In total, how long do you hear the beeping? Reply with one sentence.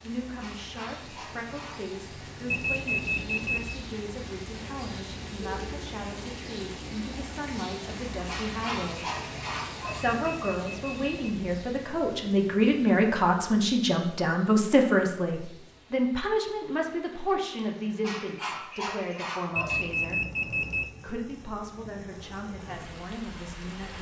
You can hear the beeping for 4 seconds altogether.